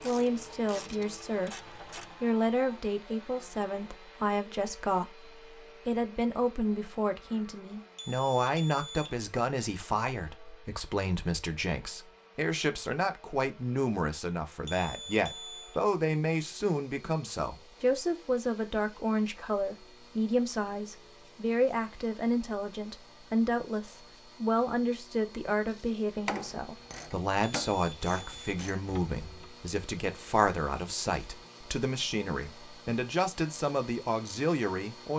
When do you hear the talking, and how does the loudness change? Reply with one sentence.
The talking can be heard from 0.0 to 35.1 s, at a steady volume.